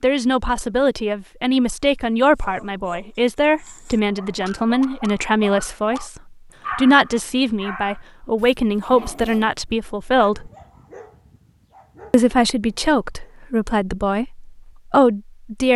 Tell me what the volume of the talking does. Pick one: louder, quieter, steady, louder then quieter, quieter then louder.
steady.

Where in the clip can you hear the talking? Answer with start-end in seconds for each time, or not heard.
0.0-10.5, 12.1-15.7.